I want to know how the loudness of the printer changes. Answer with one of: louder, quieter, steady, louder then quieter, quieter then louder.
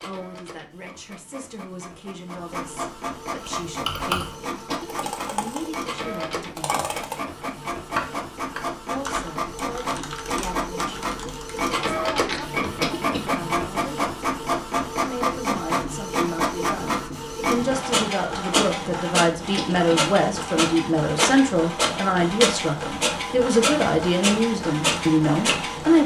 louder.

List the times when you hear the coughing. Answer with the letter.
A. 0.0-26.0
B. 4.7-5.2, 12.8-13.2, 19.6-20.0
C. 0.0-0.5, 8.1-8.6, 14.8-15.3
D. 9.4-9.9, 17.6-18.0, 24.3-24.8
B.